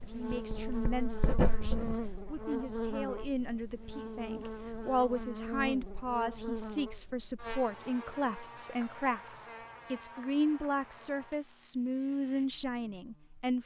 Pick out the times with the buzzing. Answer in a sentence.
The buzzing can be heard from 0.0 to 13.6 s.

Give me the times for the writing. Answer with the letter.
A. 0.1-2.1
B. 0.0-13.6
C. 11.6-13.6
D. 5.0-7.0
A.